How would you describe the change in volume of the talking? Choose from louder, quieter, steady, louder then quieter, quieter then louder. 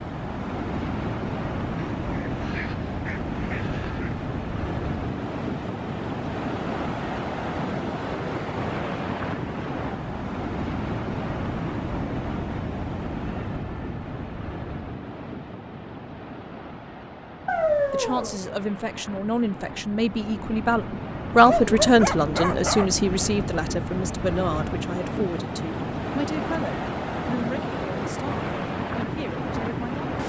louder then quieter.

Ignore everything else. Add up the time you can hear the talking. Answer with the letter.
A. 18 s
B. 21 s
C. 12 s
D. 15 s
C.